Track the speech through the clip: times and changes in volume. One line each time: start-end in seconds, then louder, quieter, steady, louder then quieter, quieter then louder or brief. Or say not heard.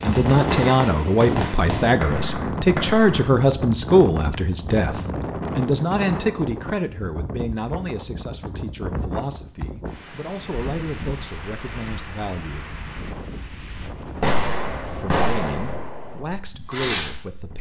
0.0-12.8 quieter
14.9-17.5 brief.